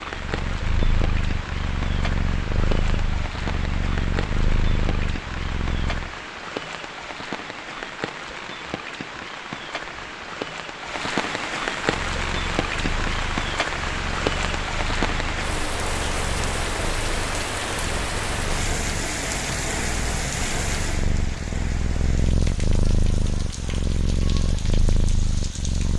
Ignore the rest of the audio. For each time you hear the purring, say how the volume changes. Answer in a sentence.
The purring can be heard from 0.0 to 6.2 s, at a steady volume; and from 11.8 to 25.9 s, getting louder.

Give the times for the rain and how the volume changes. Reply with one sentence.
The rain can be heard from 0.0 to 25.9 s, getting louder then quieter.